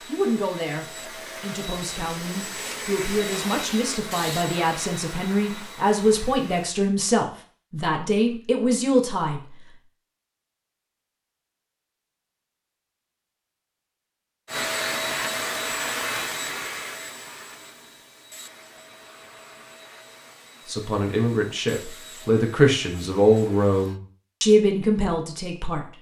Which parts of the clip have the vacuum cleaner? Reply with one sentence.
The vacuum cleaner can be heard from 0.0 to 6.7 s and from 14.4 to 24.0 s.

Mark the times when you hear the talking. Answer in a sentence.
The talking can be heard from 0.1 to 9.8 s and from 20.6 to 25.9 s.